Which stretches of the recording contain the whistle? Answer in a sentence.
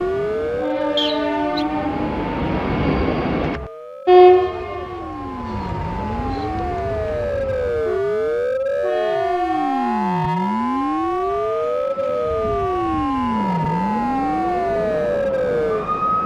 The whistle can be heard from 0.9 to 1.6 s.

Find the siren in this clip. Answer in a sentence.
You can hear the siren from 0.0 to 16.2 s.